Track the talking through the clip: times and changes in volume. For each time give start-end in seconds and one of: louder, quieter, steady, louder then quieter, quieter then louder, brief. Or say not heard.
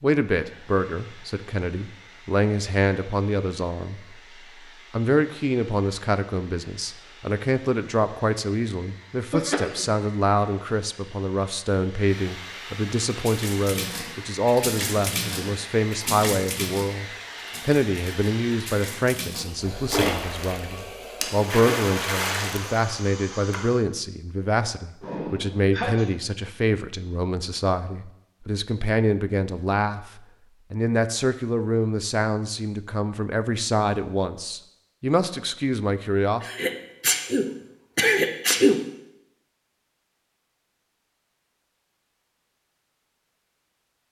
0.0-17.1 steady
17.6-36.5 steady.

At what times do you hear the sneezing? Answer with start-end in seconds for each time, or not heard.
9.3-9.8, 25.0-26.1, 36.4-38.9.